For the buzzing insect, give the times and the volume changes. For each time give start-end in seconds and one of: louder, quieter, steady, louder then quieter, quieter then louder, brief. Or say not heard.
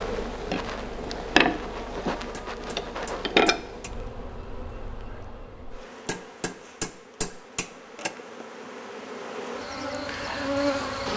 0.0-11.1 quieter then louder.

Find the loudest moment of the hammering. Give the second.
7 s.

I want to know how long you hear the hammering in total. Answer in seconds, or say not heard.
4 s.